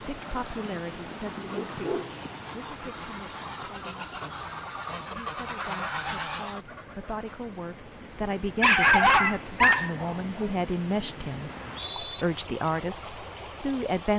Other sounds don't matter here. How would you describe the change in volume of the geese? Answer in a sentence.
The loudness of the geese goes up.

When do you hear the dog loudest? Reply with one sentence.
The loudest moment of the dog is at 9 seconds.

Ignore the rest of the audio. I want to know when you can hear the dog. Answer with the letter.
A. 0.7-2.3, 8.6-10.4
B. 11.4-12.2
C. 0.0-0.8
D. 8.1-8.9
A.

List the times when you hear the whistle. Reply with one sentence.
The whistle can be heard from 11.4 to 12.2 s.